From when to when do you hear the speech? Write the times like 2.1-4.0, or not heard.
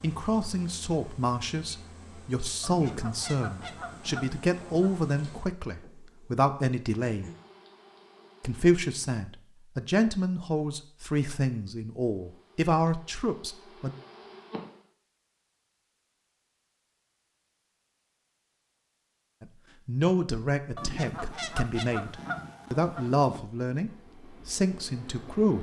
0.0-7.3, 8.4-13.9, 19.4-25.5.